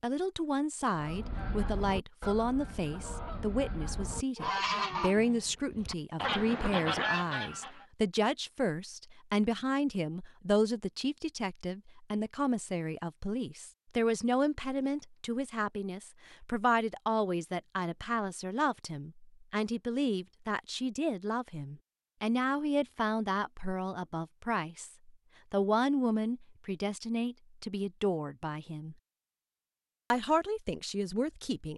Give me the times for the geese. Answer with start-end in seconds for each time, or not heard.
0.9-7.8.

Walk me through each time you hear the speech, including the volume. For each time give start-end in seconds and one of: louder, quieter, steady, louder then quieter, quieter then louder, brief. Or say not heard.
0.0-28.9 steady
30.1-31.7 brief.